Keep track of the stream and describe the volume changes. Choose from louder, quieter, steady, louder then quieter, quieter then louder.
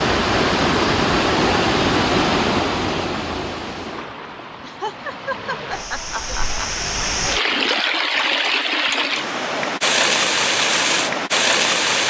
quieter then louder.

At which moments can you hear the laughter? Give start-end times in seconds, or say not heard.
4.6-6.7.